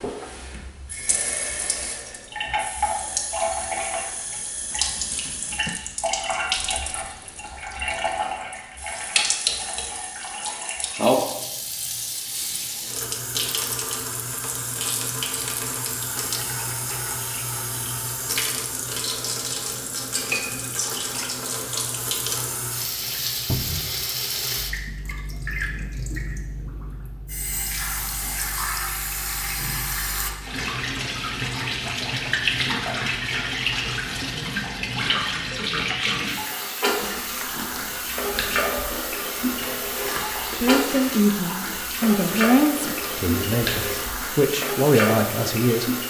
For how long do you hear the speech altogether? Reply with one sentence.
The speech can be heard for 5 seconds in total.